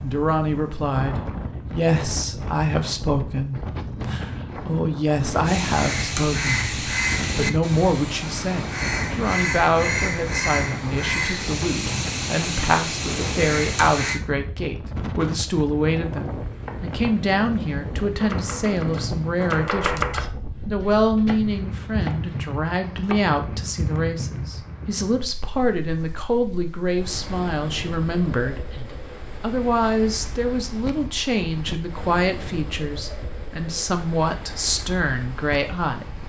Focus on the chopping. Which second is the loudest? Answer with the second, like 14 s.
20 s.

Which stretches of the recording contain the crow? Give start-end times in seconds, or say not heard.
5.5-14.2.